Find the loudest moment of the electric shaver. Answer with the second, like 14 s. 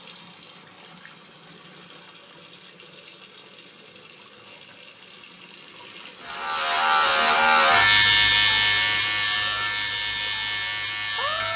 8 s.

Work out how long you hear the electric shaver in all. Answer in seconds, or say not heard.
5 s.